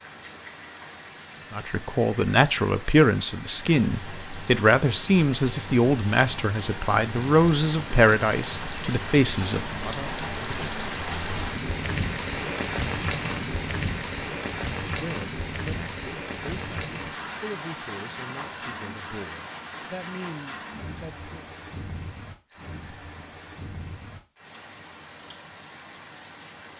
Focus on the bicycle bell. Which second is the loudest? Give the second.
2 s.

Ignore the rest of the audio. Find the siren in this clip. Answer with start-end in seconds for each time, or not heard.
not heard.